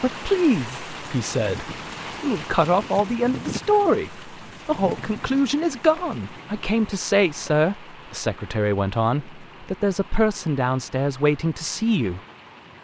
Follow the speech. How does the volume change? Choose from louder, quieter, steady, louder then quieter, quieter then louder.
steady.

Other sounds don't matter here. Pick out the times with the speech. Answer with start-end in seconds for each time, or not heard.
0.0-12.2.